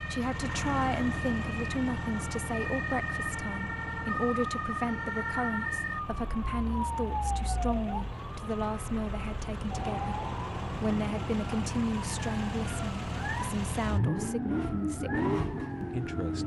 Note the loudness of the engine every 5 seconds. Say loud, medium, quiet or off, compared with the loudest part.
medium, medium, loud, loud.